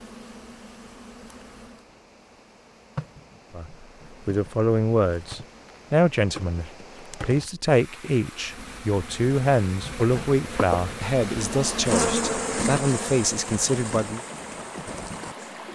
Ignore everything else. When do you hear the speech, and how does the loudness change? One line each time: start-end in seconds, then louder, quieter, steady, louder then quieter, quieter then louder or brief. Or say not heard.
3.5-14.2 steady.